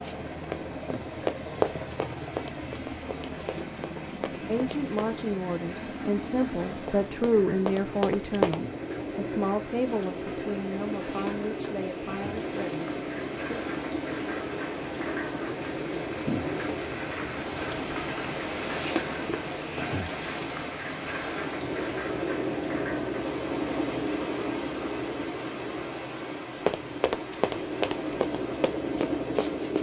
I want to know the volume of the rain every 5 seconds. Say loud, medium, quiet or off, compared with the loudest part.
quiet, medium, medium, loud, loud, medium.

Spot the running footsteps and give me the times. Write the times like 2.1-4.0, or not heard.
0.0-5.0, 6.7-8.6, 26.6-29.7.